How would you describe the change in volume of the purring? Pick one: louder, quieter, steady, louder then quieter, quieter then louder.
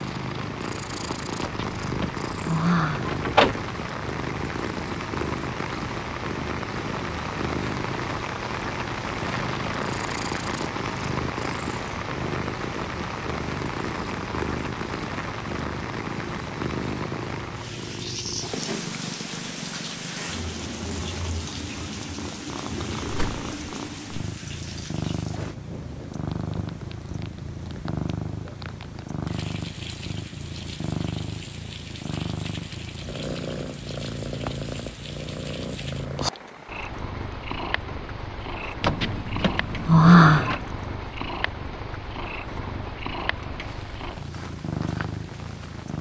steady.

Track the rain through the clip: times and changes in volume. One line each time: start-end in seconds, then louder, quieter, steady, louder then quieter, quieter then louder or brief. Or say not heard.
0.0-45.9 quieter.